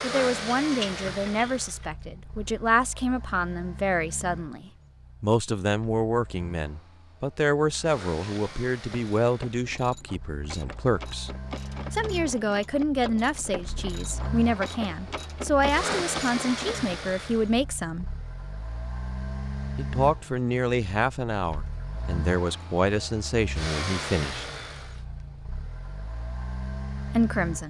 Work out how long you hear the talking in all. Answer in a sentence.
The talking can be heard for 23 seconds in total.